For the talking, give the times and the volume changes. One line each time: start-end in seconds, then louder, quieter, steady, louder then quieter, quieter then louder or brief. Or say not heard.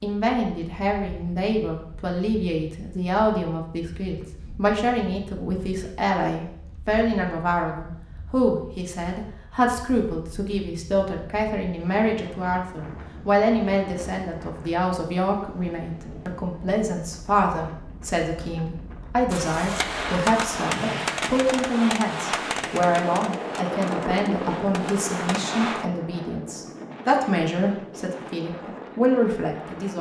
0.0-29.9 steady.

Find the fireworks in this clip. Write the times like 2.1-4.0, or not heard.
19.3-25.9.